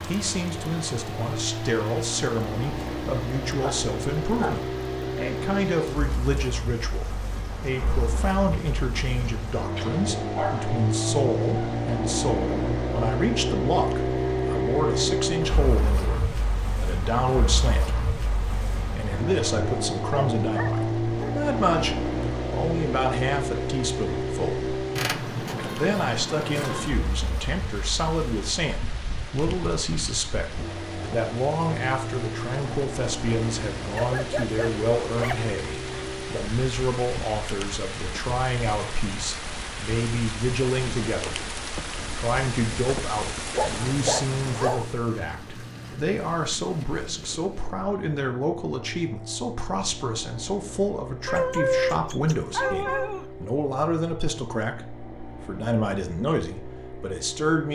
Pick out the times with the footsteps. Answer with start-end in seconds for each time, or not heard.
not heard.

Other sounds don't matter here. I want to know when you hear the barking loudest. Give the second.
52 s.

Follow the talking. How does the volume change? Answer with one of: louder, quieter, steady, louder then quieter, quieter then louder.
steady.